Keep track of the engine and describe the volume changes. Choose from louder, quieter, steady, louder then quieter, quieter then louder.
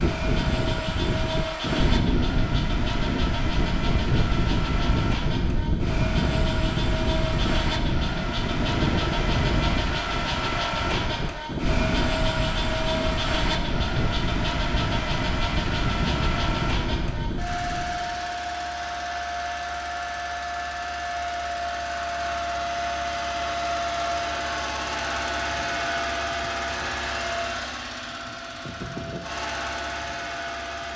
steady.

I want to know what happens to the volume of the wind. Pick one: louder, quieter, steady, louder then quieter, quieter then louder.
steady.